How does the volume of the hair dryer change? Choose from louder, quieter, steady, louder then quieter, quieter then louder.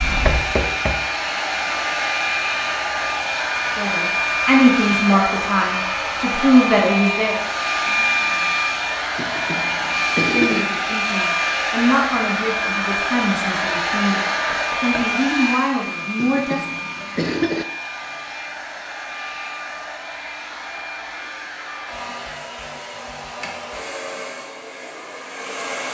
quieter.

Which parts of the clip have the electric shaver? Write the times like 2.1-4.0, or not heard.
not heard.